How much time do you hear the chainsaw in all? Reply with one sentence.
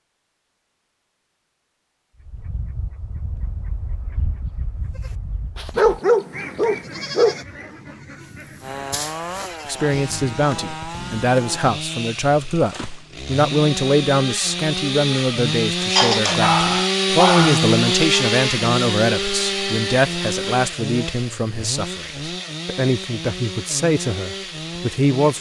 You can hear the chainsaw for 17 seconds altogether.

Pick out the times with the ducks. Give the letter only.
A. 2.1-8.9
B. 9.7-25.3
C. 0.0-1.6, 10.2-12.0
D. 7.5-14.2
A.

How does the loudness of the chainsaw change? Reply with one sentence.
The volume of the chainsaw goes up, then down.